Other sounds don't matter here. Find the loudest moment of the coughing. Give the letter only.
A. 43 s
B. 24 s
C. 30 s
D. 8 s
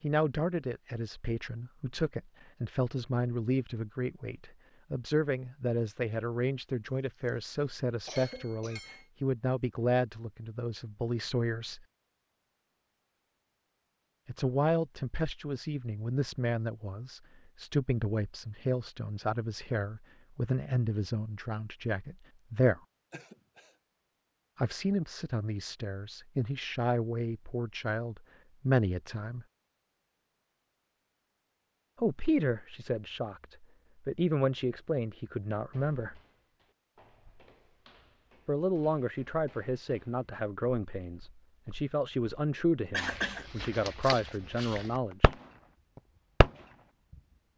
A.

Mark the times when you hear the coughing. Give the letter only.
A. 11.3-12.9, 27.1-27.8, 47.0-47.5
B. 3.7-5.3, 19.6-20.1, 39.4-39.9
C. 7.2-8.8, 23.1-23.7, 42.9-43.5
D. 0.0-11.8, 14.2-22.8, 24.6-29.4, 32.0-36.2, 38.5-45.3
C.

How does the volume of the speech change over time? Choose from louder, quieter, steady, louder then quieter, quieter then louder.
steady.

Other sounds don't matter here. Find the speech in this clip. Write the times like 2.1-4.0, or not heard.
0.0-11.8, 14.2-22.8, 24.6-29.4, 32.0-36.2, 38.5-45.3.